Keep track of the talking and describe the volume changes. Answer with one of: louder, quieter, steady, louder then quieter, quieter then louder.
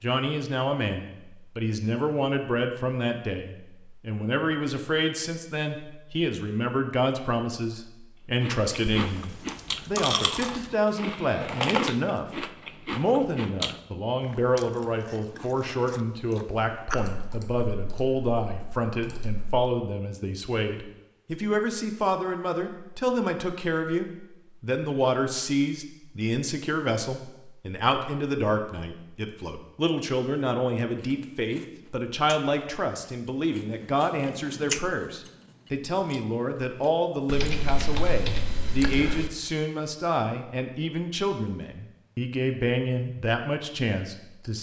steady.